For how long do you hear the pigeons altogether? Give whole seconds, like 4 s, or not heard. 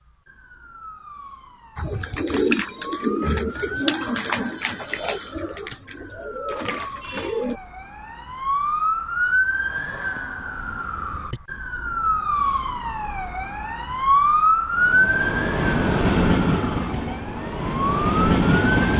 6 s.